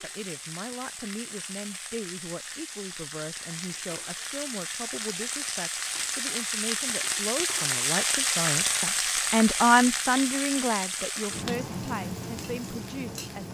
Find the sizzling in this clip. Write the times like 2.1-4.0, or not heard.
0.0-13.5.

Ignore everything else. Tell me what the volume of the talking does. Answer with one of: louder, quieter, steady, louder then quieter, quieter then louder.
louder then quieter.